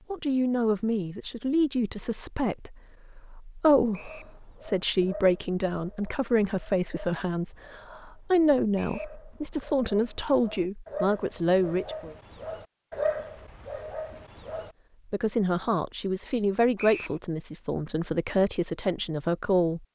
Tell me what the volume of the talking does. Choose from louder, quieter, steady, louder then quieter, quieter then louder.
steady.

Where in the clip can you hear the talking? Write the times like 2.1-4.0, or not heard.
0.1-12.2, 15.1-19.8.